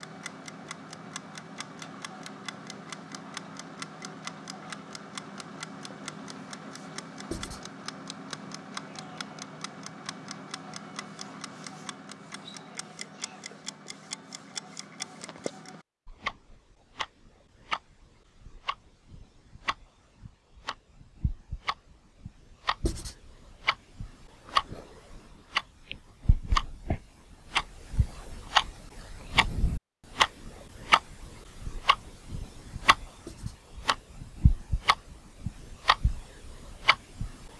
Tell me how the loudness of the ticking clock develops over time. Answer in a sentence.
The loudness of the ticking clock goes up.